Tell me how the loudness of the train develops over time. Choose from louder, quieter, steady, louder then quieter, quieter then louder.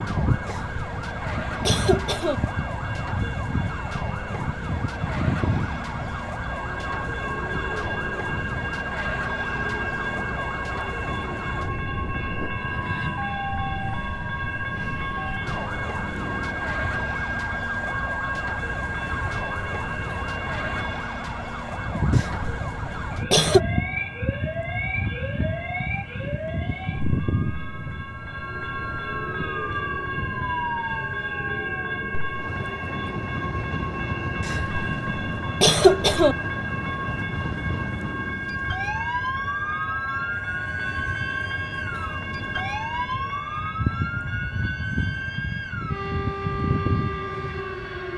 steady.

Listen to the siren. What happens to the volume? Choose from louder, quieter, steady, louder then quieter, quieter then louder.
steady.